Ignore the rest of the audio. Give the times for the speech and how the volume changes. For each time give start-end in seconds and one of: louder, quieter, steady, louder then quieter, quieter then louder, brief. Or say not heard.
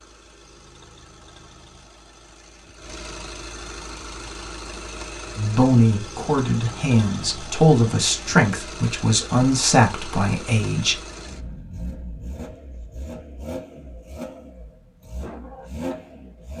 5.3-11.0 steady.